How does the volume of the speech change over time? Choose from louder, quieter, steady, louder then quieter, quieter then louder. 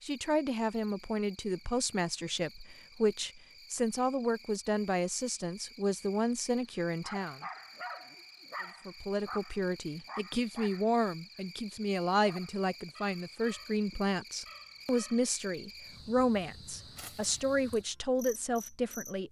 steady.